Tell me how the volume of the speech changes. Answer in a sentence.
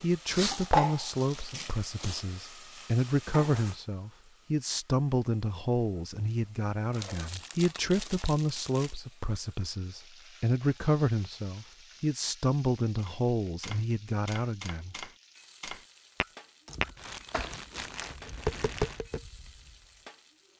The volume of the speech stays about the same.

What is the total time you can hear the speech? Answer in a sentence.
You can hear the speech for 15 seconds altogether.